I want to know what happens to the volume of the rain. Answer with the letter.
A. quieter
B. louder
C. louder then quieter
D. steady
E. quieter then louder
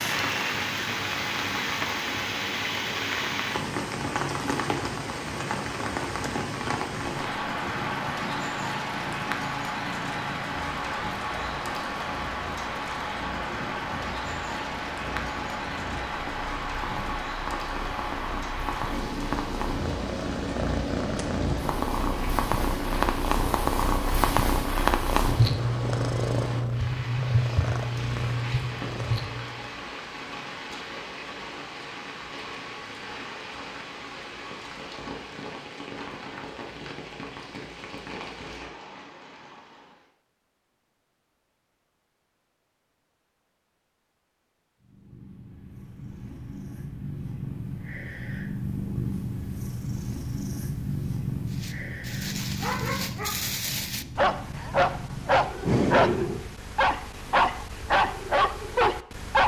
A.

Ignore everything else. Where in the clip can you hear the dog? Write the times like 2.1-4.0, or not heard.
51.5-59.4.